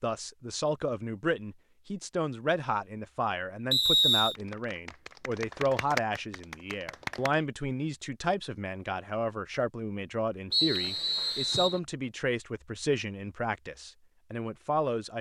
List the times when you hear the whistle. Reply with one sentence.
You can hear the whistle from 3.7 to 4.3 s and from 10.5 to 11.8 s.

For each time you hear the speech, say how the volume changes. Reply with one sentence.
You can hear the speech from 0.0 to 15.1 s, at a steady volume.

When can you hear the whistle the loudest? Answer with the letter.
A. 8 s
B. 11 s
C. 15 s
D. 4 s
D.